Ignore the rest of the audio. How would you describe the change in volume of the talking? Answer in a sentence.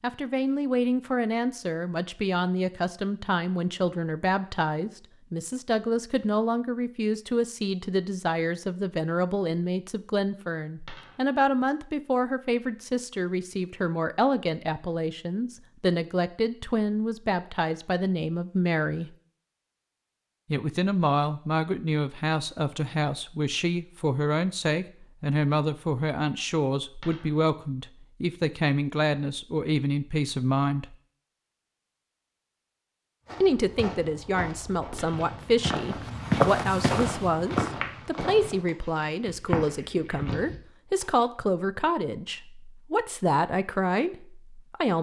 The loudness of the talking stays about the same.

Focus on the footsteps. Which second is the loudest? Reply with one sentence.
The volume of the footsteps peaks at 36 seconds.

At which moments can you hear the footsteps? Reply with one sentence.
You can hear the footsteps from 33.2 to 41.0 s.